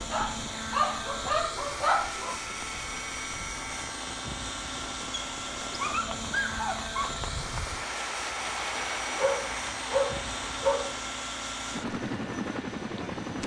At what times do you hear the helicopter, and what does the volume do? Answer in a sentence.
The helicopter can be heard from 0.0 to 13.4 s, at a steady volume.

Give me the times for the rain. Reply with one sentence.
The rain can be heard from 0.0 to 13.2 s.